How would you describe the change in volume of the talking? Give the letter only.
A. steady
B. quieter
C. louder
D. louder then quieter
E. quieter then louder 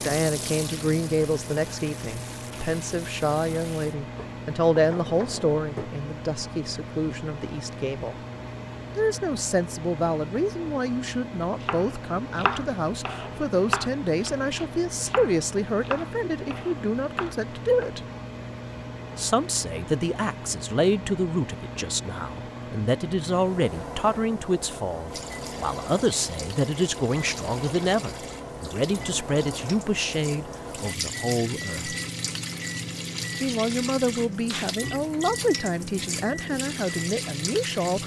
A.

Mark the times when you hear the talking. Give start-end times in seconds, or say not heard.
0.0-8.2, 8.9-18.0, 19.1-31.9, 33.4-38.0.